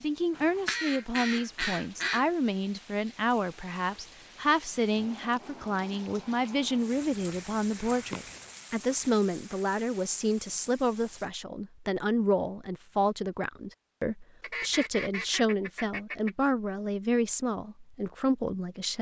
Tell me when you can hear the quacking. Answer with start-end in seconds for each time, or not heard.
0.3-2.2, 6.9-8.4, 14.4-16.4.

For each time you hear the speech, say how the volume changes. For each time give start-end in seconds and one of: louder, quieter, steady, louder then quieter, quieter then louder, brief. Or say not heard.
0.0-18.9 steady.